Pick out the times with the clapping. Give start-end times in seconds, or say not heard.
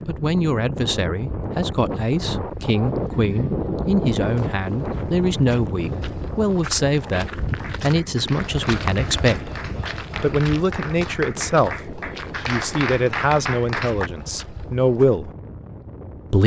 7.6-14.1.